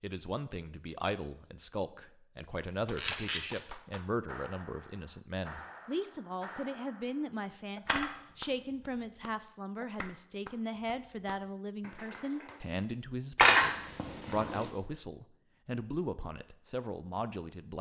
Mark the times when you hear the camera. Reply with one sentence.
You can hear the camera from 3.0 to 3.6 s, from 7.8 to 9.1 s and from 13.3 to 14.7 s.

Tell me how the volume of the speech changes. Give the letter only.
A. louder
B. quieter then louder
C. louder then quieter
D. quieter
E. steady
E.